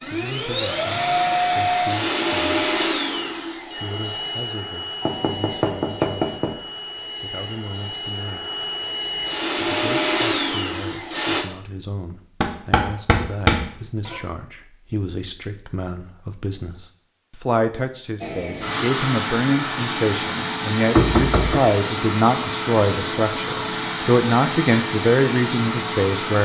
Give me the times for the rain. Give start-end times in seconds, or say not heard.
not heard.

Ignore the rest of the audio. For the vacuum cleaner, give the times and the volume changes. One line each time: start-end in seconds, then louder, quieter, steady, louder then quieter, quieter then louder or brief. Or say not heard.
0.0-11.4 quieter then louder
18.2-26.4 steady.